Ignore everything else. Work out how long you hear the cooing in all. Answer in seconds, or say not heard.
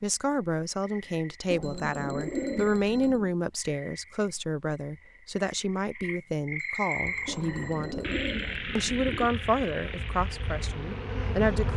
4 s.